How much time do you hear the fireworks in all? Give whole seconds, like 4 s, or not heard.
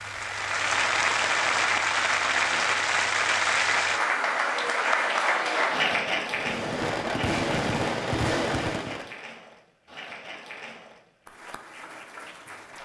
3 s.